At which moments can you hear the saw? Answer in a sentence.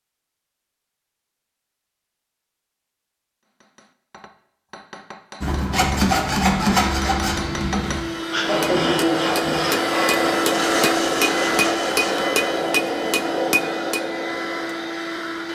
You can hear the saw from 5.4 to 12.2 s.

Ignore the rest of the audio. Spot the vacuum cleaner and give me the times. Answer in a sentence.
You can hear the vacuum cleaner from 6.7 to 15.5 s.